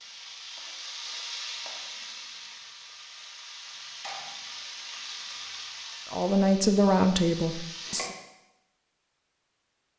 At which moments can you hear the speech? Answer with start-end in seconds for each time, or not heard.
6.1-8.2.